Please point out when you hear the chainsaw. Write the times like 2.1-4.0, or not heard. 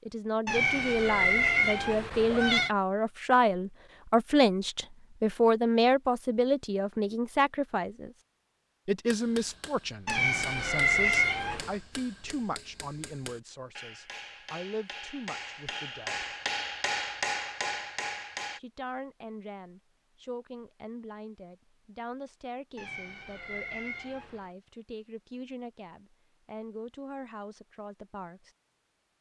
not heard.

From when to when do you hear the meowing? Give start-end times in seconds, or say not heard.
0.5-2.7, 10.1-11.8, 22.8-24.5.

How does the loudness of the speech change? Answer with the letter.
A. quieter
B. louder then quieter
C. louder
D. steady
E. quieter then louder
A.